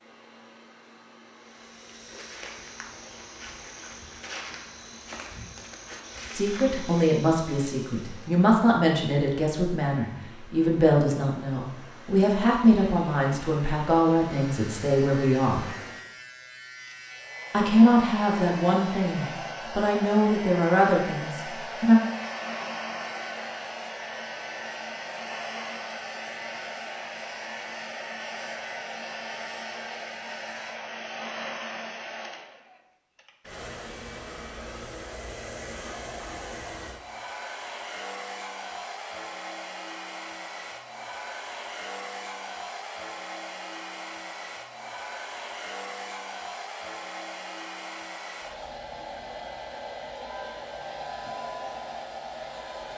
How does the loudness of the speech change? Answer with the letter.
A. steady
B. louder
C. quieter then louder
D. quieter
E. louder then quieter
A.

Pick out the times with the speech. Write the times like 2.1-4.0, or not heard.
6.3-15.7, 17.5-22.0.